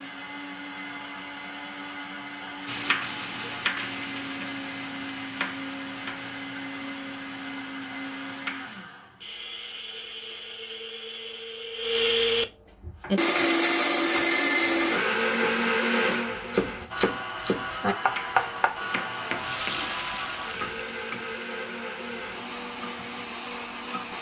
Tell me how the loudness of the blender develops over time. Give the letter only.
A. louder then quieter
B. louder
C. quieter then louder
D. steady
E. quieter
A.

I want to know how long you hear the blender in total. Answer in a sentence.
You can hear the blender for 24 seconds altogether.